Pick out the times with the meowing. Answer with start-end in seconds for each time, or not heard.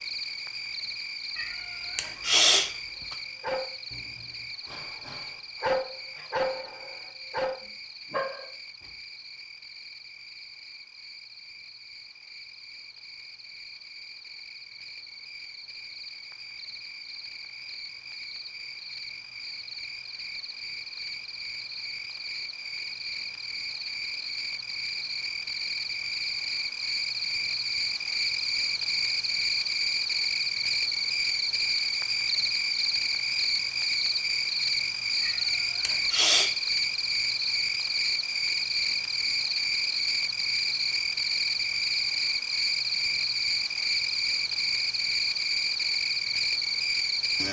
1.4-3.1, 35.2-36.5.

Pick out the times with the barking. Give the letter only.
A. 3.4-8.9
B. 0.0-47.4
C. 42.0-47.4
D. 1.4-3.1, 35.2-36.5
A.